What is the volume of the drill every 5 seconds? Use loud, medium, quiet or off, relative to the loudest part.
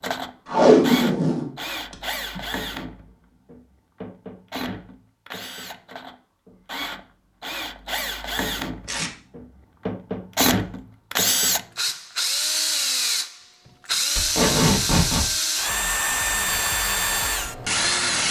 medium, medium, loud, loud.